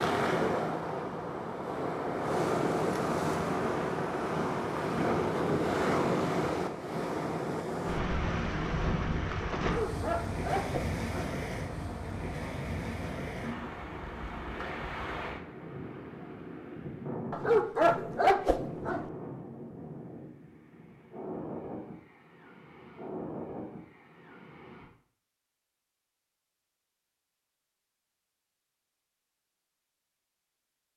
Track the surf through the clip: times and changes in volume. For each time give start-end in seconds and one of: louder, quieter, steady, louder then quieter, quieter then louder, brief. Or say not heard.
0.0-24.9 quieter.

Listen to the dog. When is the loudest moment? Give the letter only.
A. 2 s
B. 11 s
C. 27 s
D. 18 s
D.